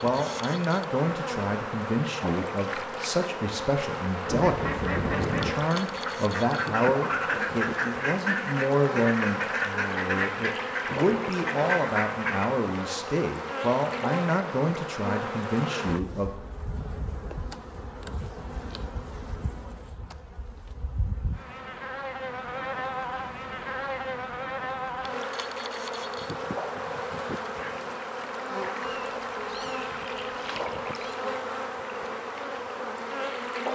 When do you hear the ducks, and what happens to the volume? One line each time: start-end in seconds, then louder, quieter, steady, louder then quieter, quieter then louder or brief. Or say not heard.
4.2-12.5 steady.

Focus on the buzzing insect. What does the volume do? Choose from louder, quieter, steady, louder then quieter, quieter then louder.
steady.